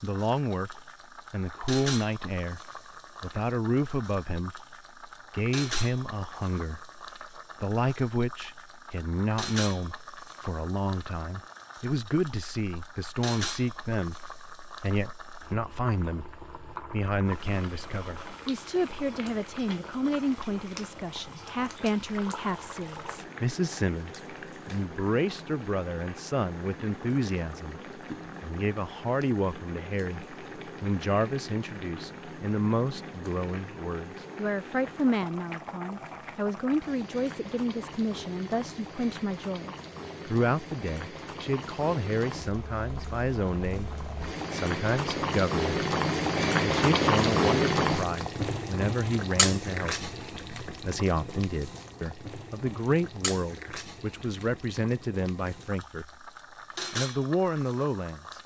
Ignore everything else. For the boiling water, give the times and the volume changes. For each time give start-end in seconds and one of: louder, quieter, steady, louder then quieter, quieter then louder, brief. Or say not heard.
0.0-58.4 louder.